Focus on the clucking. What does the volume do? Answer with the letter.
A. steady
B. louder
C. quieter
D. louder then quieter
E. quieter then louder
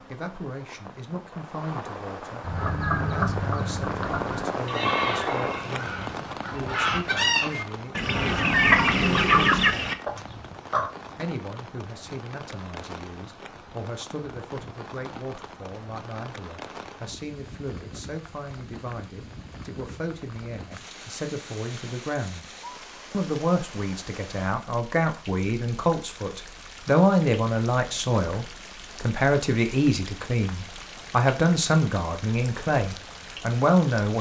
B.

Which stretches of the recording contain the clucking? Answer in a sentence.
The clucking can be heard from 2.4 to 10.9 s.